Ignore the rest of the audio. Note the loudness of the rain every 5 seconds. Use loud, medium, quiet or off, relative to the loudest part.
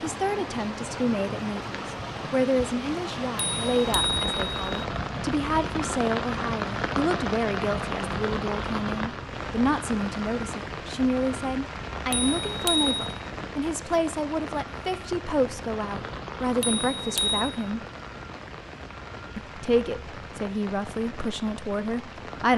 loud, loud, medium, medium, medium.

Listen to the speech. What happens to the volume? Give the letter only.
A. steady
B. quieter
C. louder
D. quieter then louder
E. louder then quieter
A.